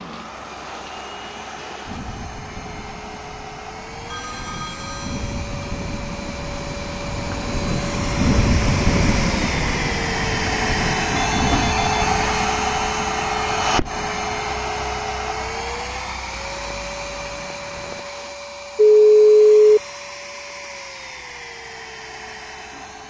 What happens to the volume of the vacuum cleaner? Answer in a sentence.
The loudness of the vacuum cleaner goes up, then down.